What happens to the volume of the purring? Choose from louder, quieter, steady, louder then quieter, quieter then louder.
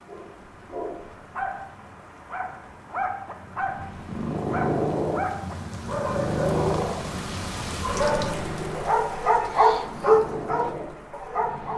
quieter.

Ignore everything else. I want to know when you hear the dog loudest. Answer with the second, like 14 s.
10 s.